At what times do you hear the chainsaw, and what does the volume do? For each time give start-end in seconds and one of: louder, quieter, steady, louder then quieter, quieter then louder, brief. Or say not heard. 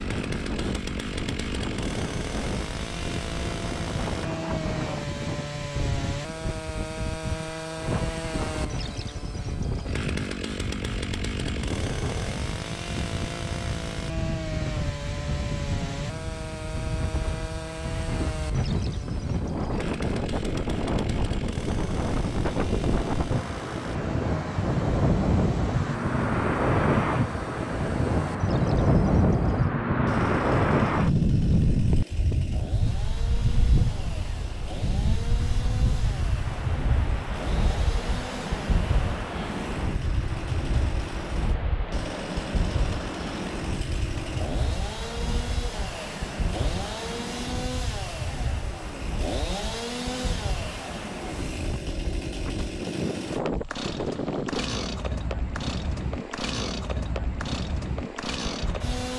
0.0-59.1 quieter then louder.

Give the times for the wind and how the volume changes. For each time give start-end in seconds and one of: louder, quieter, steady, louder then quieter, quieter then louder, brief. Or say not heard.
0.0-59.1 louder then quieter.